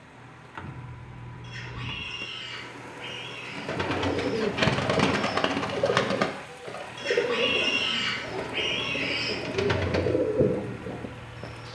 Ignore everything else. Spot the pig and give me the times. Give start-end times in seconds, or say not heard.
1.4-3.7, 7.0-9.4.